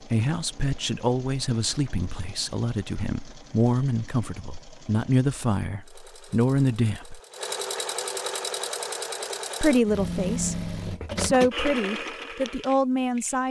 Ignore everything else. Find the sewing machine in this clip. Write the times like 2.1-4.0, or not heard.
0.0-13.4.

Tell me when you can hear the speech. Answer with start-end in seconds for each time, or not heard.
0.1-7.2, 9.6-13.4.